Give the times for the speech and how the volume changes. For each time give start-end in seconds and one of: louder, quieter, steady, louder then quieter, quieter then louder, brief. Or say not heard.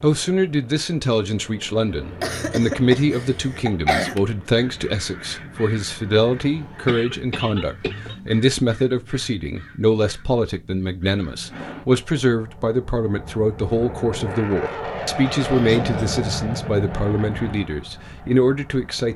0.0-19.1 steady.